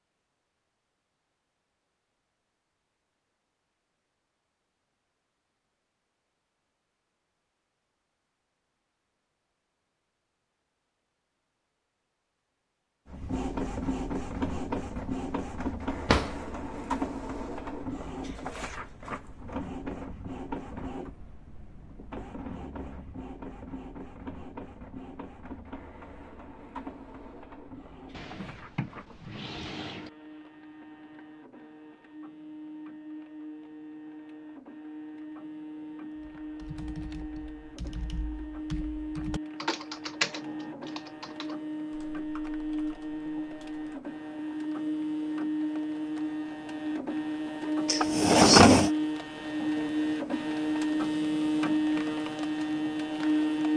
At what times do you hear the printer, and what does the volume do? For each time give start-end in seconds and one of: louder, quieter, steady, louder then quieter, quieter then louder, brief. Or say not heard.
13.1-53.7 quieter then louder.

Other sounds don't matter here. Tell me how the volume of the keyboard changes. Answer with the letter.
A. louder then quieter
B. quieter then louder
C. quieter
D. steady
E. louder
A.